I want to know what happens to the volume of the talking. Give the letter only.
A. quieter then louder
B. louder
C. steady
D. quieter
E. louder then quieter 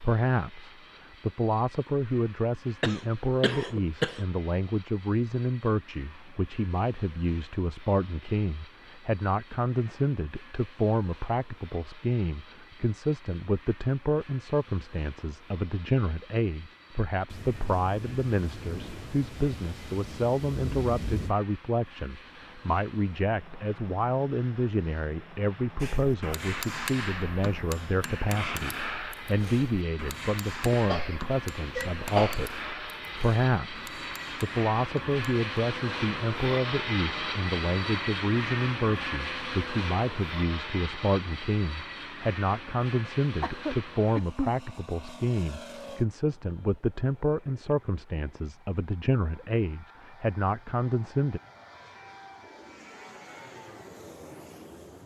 C.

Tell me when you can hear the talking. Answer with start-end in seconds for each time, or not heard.
0.0-51.4.